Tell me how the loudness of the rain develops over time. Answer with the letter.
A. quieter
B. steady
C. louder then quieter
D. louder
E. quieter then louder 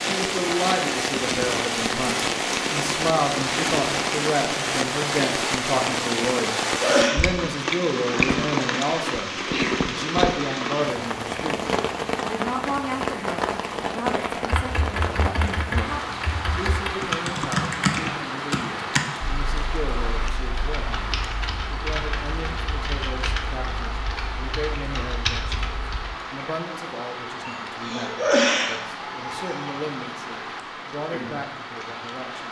A.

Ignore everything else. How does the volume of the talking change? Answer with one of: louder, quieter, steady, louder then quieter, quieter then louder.
quieter.